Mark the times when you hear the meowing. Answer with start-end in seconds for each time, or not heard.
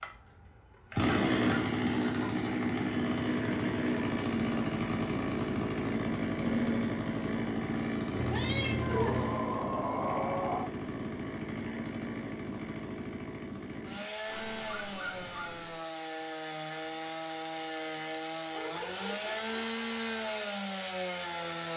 8.2-9.4.